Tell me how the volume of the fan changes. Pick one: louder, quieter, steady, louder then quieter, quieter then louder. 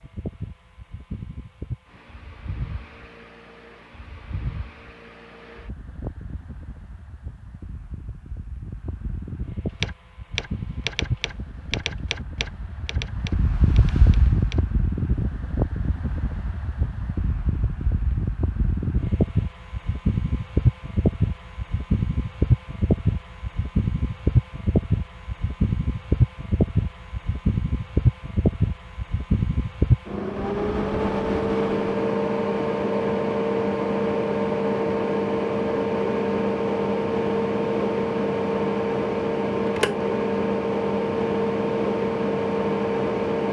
louder.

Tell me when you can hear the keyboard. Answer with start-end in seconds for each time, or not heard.
9.7-14.7.